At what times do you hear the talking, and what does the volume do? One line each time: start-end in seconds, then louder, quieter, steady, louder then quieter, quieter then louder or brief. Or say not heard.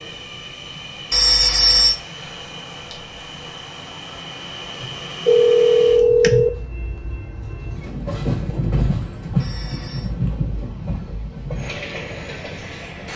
not heard.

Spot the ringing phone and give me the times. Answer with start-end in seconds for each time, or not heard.
1.1-1.9, 4.8-6.5, 9.4-10.1.